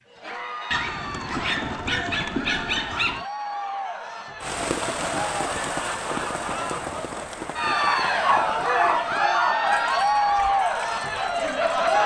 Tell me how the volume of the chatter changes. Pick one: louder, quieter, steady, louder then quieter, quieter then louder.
louder.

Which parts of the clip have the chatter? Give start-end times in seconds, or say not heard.
0.1-12.0.